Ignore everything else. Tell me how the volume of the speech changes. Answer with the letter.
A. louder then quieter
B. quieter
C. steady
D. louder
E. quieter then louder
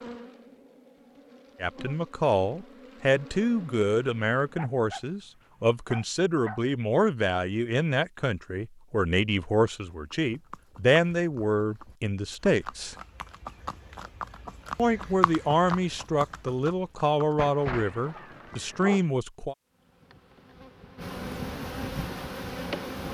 C.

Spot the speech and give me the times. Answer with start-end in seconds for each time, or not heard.
1.6-12.9, 14.8-19.6.